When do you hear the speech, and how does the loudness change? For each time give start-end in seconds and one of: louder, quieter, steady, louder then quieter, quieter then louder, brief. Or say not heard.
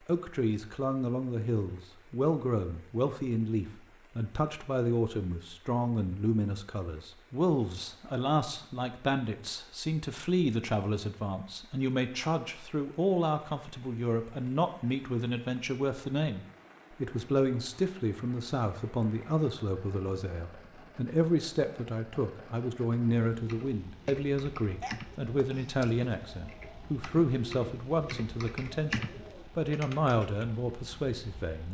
0.1-31.6 steady.